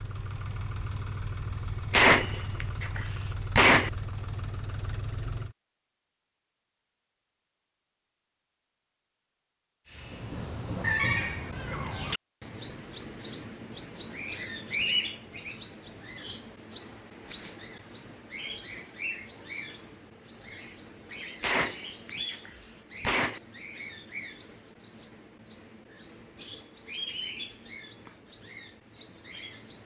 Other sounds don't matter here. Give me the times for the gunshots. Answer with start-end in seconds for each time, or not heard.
1.9-3.9, 21.4-23.4.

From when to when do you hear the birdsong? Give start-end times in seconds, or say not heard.
9.9-29.8.